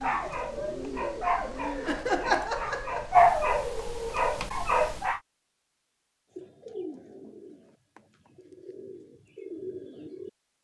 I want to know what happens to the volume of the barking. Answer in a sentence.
The volume of the barking goes up, then down.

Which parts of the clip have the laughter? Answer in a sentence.
The laughter can be heard from 1.9 to 3.1 s.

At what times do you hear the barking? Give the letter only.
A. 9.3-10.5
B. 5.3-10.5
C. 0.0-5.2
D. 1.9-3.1
C.